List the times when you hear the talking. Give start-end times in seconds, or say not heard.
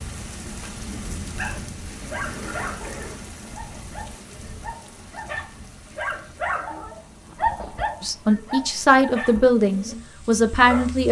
8.0-11.0.